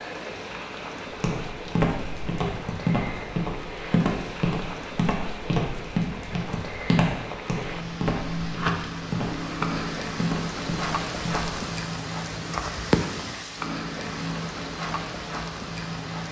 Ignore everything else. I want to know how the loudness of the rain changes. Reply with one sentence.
The loudness of the rain goes up.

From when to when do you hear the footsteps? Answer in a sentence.
You can hear the footsteps from 1.1 to 11.5 s.